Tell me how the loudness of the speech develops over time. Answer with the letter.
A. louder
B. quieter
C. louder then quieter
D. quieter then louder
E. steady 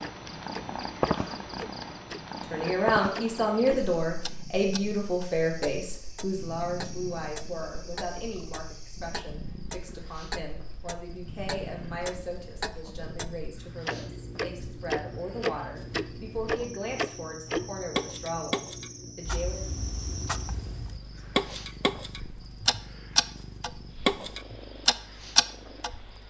B.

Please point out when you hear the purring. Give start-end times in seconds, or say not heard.
0.0-26.2.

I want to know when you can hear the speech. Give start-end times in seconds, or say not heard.
2.4-19.7.